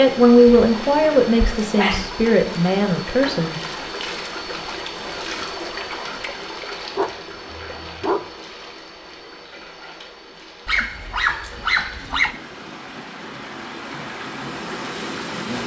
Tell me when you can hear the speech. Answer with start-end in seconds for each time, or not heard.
0.0-3.6.